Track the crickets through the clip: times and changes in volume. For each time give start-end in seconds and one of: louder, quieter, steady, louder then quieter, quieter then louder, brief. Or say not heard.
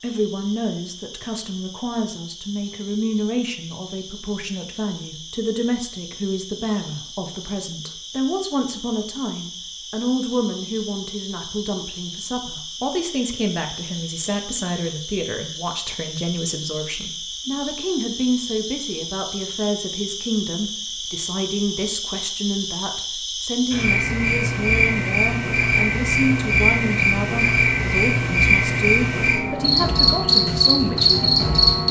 0.0-31.8 louder.